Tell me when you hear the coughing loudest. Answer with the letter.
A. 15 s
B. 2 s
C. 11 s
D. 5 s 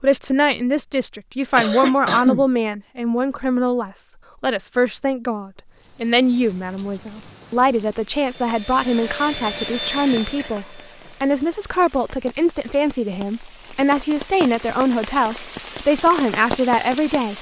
B.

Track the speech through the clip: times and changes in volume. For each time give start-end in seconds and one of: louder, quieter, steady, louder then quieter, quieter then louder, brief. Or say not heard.
0.0-17.3 steady.